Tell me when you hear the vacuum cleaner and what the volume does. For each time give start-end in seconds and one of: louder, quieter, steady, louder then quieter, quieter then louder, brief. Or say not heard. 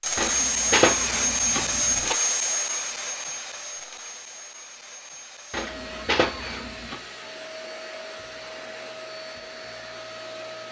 0.0-10.6 quieter.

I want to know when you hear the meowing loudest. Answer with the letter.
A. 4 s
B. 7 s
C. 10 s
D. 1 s
D.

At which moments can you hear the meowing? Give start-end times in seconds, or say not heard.
0.1-2.2, 5.5-7.0.